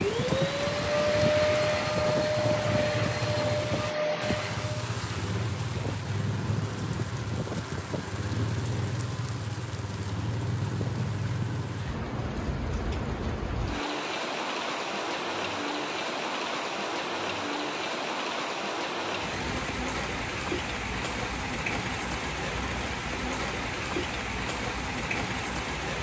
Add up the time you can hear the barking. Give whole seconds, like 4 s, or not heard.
not heard.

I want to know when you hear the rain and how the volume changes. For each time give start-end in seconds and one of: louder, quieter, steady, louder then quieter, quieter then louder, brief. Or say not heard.
0.0-25.9 steady.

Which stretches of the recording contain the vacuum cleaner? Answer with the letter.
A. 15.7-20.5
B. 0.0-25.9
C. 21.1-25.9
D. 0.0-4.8
D.